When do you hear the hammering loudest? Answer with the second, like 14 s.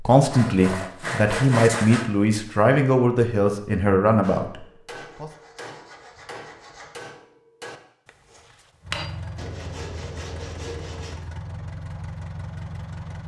9 s.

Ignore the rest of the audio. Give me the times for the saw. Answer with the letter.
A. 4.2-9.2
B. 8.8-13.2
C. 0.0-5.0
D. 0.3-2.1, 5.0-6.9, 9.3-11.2
D.